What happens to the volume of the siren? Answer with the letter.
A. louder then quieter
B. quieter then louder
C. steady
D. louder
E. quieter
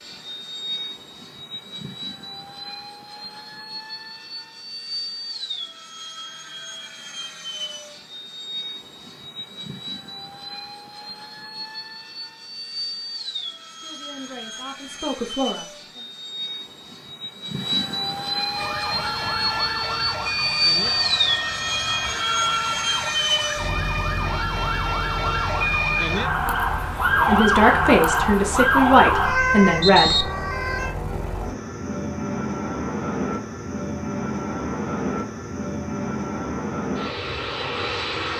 D.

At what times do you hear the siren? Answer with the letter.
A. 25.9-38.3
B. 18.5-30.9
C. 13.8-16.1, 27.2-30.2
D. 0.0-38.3
B.